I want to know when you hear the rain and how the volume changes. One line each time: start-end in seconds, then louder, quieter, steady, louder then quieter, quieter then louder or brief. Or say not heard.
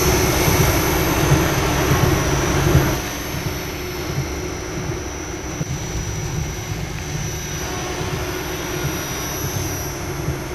0.0-10.4 quieter.